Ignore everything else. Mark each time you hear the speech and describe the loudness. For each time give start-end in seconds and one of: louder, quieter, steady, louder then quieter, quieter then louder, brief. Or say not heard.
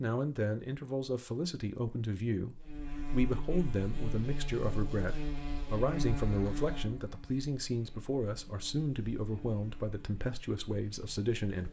0.0-11.6 steady.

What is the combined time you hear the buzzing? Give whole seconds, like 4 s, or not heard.
9 s.